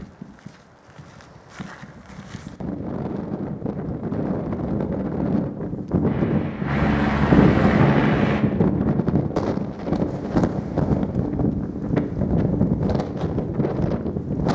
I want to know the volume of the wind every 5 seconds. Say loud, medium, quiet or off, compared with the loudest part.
medium, loud, loud.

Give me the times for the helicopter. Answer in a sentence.
You can hear the helicopter from 6.0 to 8.4 s.